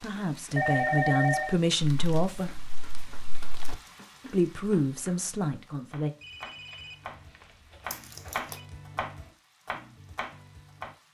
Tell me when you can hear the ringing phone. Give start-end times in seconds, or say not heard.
0.6-1.6, 6.2-8.6.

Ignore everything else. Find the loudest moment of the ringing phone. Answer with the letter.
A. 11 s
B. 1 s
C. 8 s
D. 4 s
B.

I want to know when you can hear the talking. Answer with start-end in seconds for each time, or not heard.
0.0-2.5, 4.2-6.1.